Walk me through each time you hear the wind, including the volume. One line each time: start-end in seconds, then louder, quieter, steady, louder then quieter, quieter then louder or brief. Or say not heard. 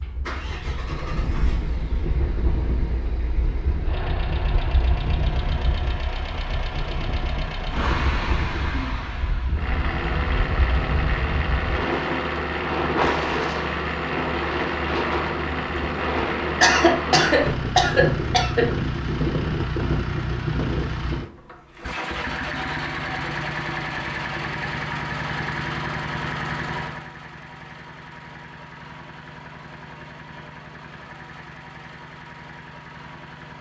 0.0-21.3 louder.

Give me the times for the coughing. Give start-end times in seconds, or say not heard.
16.1-18.7.